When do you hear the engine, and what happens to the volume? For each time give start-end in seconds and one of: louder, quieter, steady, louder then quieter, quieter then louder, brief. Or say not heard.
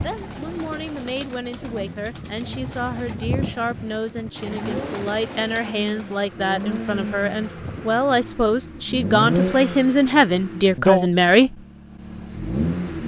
0.0-13.0 louder.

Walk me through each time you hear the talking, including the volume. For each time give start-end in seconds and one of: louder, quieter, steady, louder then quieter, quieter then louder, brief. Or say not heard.
0.0-11.6 louder.